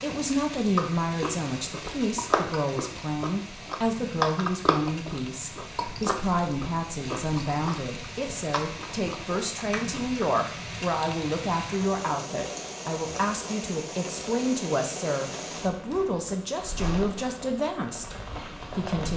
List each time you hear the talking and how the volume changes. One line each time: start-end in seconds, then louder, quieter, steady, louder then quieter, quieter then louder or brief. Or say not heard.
0.0-19.1 steady.